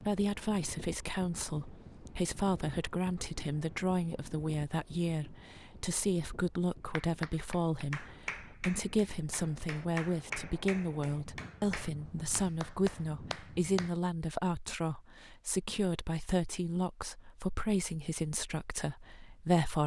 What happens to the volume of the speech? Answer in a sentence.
The volume of the speech stays about the same.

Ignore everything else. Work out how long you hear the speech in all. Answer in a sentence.
You can hear the speech for 20 seconds altogether.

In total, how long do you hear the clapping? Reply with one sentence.
You can hear the clapping for 7 seconds altogether.